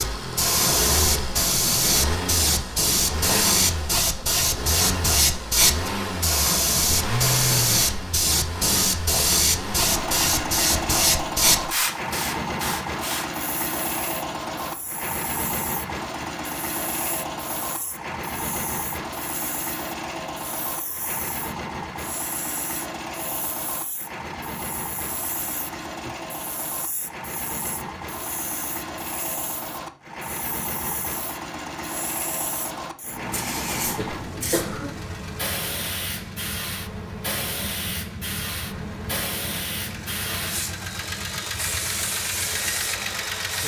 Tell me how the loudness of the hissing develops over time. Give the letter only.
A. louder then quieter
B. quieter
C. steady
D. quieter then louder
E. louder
D.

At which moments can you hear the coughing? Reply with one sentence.
The coughing can be heard from 33.8 to 35.0 s.